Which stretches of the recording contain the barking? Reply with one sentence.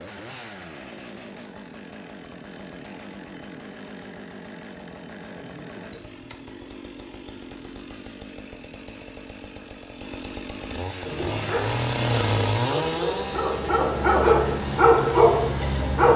The barking can be heard from 11.1 to 16.1 s.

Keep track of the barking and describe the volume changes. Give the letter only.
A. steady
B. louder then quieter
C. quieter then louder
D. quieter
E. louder
E.